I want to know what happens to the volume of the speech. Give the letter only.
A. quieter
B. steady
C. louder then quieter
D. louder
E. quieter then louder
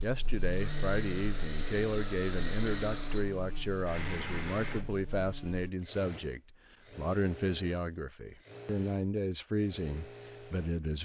B.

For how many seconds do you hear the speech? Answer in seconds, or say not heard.
11 s.